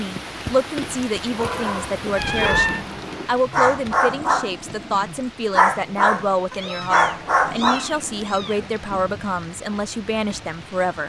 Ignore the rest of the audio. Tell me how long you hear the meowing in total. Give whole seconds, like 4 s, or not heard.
3 s.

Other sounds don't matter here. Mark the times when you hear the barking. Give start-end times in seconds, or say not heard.
1.2-8.3.